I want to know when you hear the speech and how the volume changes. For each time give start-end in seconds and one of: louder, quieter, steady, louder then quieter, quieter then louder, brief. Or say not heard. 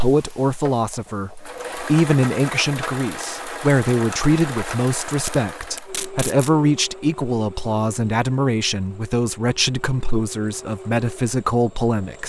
0.0-12.2 steady.